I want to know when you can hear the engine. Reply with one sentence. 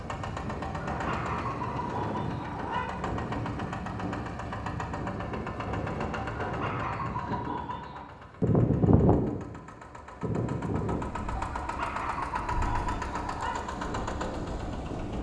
You can hear the engine from 0.0 to 15.1 s.